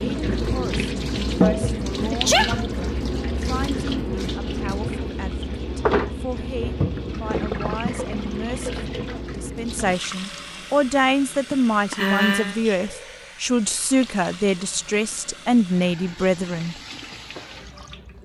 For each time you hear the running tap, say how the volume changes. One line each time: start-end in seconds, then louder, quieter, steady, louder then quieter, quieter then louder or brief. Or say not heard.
0.0-18.1 quieter.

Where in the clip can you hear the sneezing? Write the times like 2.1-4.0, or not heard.
2.1-2.6, 11.5-12.6.